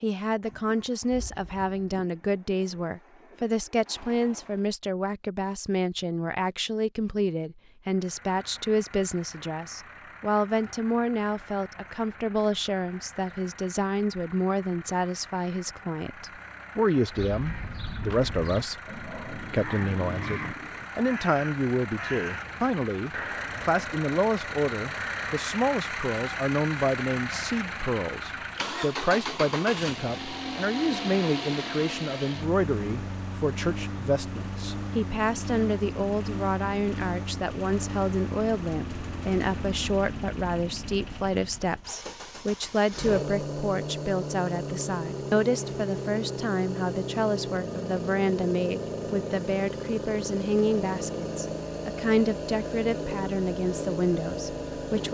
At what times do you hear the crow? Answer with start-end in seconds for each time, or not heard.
17.1-25.6.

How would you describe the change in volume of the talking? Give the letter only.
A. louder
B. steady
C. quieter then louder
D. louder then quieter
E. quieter
B.